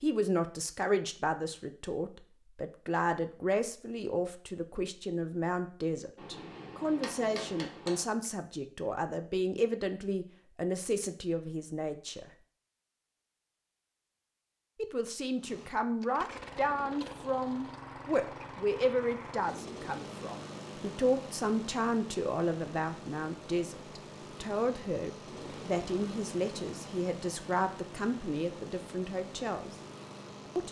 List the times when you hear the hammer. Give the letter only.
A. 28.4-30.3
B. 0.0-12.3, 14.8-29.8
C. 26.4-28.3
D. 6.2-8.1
D.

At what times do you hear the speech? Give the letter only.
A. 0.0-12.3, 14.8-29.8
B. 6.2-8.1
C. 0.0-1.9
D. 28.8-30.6
A.